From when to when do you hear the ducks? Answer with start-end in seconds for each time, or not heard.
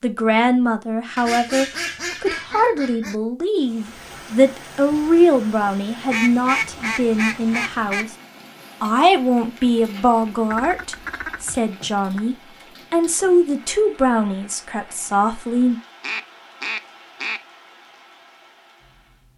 1.1-3.1, 6.0-8.1, 10.5-12.2, 16.0-17.4.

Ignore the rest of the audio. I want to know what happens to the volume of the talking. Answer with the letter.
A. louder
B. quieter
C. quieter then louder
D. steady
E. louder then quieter
D.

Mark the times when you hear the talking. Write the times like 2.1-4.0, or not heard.
0.0-8.2, 8.8-15.8.